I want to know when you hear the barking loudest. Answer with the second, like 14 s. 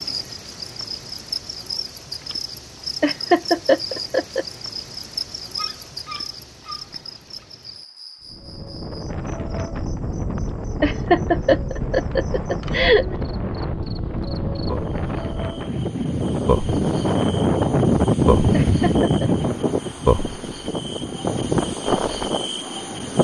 6 s.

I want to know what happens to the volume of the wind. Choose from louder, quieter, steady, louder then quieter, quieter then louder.
louder then quieter.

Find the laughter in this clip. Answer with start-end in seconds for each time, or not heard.
3.0-4.5, 10.8-13.1, 18.5-19.3.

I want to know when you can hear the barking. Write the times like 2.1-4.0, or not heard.
5.5-7.5.